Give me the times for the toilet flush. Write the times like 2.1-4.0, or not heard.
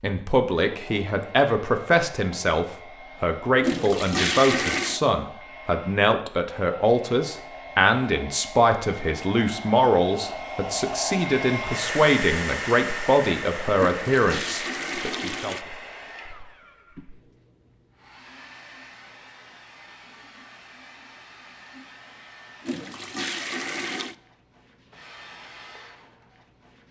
3.6-5.0, 13.8-15.6, 22.6-24.1.